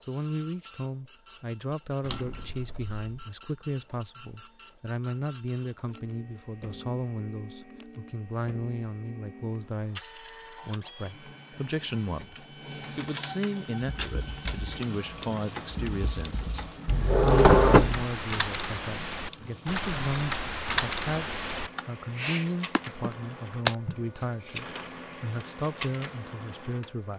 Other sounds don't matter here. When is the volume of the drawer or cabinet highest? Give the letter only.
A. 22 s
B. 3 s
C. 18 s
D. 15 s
C.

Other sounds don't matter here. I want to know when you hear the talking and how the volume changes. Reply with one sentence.
The talking can be heard from 0.1 to 27.1 s, at a steady volume.